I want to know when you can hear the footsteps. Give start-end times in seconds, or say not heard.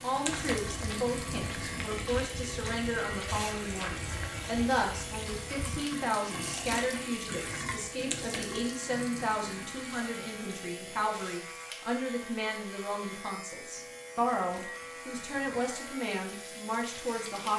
0.2-5.8.